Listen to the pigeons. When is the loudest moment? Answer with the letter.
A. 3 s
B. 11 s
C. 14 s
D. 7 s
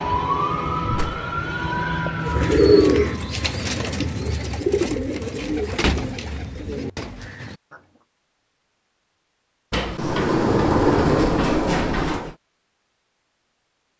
A.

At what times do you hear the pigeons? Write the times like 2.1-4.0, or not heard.
2.2-7.8.